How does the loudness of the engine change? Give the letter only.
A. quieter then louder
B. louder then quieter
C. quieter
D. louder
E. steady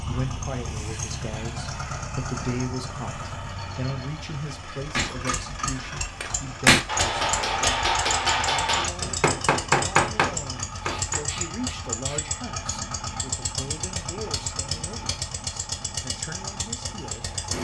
E.